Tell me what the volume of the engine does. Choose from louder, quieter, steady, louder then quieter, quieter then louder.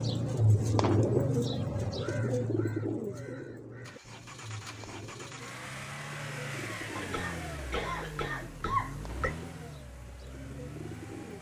louder then quieter.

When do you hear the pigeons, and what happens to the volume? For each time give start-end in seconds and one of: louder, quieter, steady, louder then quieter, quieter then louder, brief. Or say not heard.
0.0-11.3 quieter.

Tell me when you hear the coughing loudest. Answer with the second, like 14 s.
9 s.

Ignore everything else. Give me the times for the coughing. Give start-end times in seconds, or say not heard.
7.0-9.3.